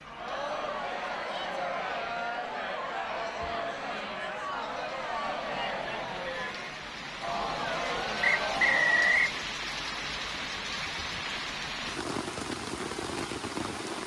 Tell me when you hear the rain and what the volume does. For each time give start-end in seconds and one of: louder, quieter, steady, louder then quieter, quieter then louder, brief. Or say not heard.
0.0-14.0 louder.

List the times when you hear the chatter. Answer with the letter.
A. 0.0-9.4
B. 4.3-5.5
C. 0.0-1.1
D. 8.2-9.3
A.